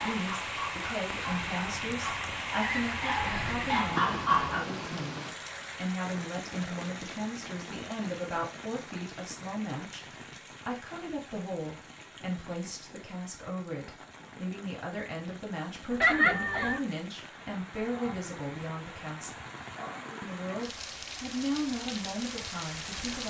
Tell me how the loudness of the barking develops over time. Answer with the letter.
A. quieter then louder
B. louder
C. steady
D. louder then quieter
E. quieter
B.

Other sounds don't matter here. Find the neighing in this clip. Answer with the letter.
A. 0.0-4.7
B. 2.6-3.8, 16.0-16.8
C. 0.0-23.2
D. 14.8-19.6
B.